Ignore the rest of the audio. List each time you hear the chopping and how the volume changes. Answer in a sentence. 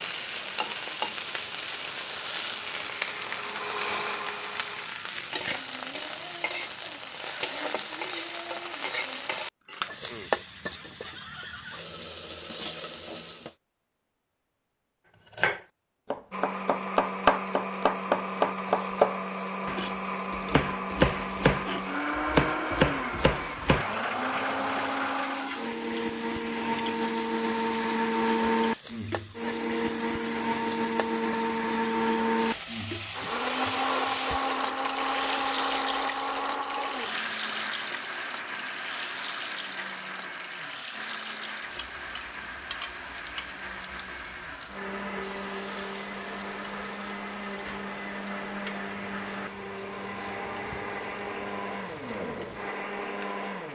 The chopping can be heard from 15.3 to 23.9 s, at a steady volume.